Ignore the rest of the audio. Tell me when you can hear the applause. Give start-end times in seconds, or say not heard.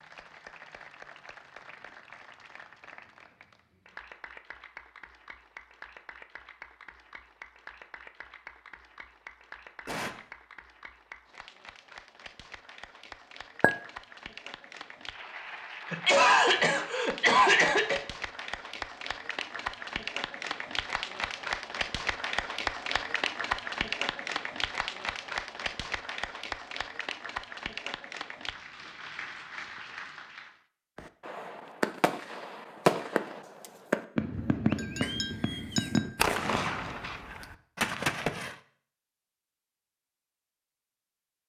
0.0-30.6.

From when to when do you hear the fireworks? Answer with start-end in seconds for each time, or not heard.
30.9-38.5.